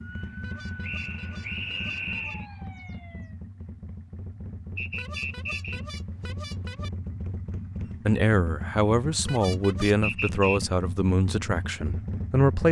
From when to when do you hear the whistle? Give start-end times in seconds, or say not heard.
0.8-2.5, 4.8-5.8, 10.0-10.6.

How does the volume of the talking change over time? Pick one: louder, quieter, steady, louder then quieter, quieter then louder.
quieter.